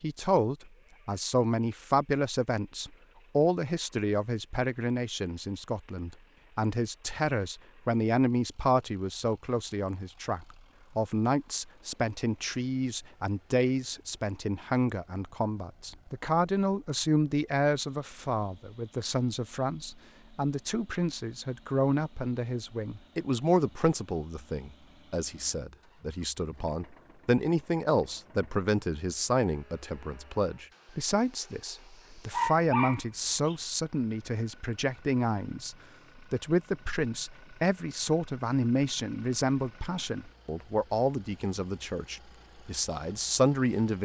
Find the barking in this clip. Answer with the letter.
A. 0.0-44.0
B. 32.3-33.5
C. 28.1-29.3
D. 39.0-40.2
B.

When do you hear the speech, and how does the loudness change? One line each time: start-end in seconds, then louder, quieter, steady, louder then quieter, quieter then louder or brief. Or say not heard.
0.0-44.0 steady.